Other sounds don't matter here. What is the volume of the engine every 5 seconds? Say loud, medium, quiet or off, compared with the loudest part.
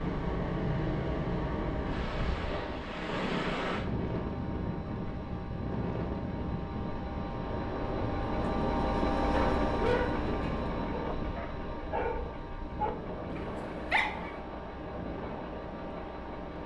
medium, loud, medium, medium.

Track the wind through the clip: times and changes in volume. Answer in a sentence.
You can hear the wind from 0.0 to 16.6 s, getting quieter.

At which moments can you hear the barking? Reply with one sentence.
You can hear the barking from 9.3 to 10.2 s and from 10.9 to 14.4 s.